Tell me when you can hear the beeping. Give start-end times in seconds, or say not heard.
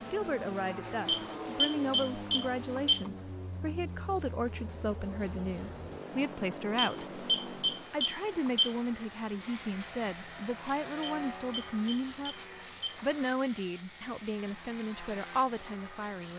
1.1-3.1, 6.8-8.8, 11.0-13.2.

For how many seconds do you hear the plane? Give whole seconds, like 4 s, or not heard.
16 s.